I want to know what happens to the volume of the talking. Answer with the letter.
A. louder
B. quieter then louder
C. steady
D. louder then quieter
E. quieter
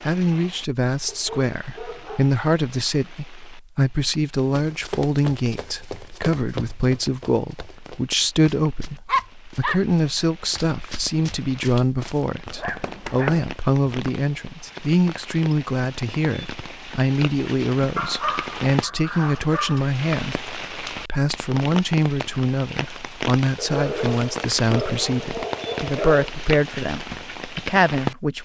C.